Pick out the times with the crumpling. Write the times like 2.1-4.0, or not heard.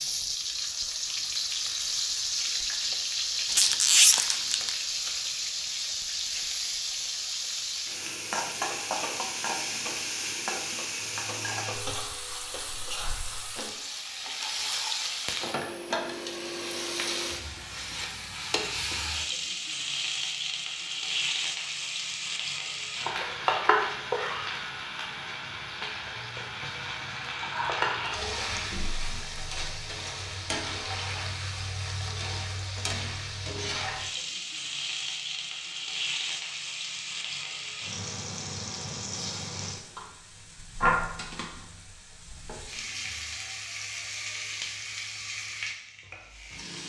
3.5-4.8.